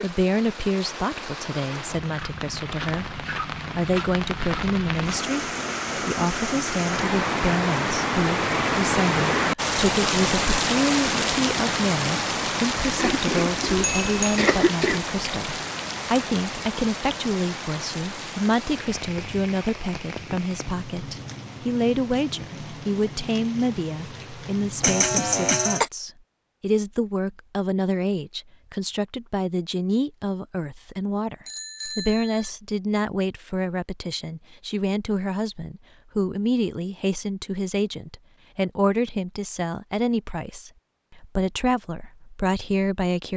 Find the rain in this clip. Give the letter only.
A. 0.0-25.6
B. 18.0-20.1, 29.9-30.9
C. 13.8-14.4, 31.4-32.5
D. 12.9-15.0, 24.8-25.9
A.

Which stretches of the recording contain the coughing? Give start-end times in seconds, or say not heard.
12.9-15.0, 24.8-25.9.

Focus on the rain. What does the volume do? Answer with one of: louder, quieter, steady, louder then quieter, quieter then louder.
louder then quieter.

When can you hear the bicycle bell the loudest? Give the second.
14 s.